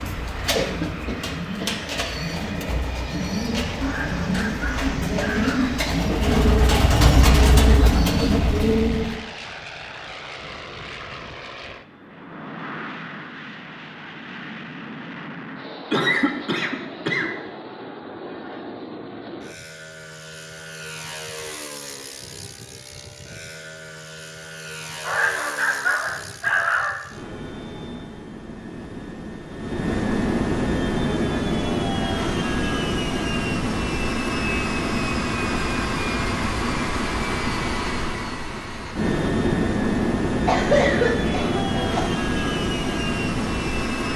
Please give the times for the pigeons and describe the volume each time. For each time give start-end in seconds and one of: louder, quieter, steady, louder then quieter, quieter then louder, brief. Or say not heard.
0.0-9.2 louder.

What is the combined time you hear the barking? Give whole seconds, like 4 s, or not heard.
4 s.